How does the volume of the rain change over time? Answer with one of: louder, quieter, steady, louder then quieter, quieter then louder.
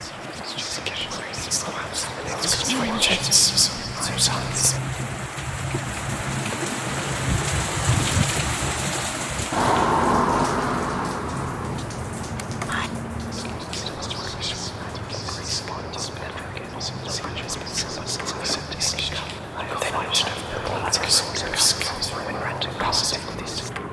louder then quieter.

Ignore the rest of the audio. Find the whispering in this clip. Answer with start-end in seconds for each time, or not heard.
0.0-4.8, 12.7-23.7.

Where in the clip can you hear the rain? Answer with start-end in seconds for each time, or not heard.
0.0-23.8.